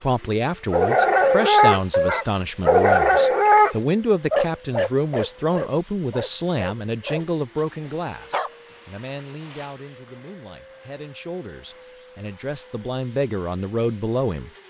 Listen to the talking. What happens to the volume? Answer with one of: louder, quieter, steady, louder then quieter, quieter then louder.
quieter then louder.